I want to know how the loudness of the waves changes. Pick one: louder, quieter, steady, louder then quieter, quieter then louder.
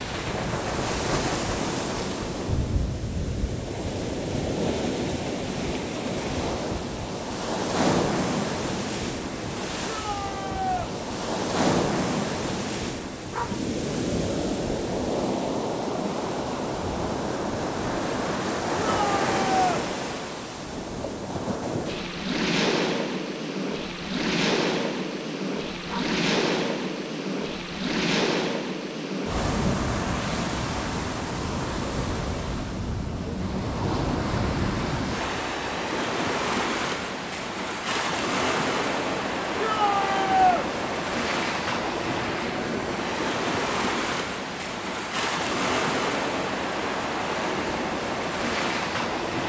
steady.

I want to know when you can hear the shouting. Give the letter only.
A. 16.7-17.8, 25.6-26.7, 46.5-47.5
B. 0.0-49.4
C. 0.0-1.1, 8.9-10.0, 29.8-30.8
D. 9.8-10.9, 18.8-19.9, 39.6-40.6
D.